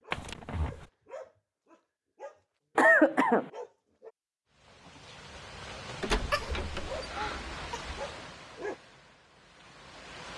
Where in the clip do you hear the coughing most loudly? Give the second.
3 s.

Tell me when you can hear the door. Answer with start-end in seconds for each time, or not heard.
0.1-0.8, 6.0-7.0.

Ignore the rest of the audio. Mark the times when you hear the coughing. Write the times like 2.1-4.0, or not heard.
2.8-3.5, 6.2-8.0.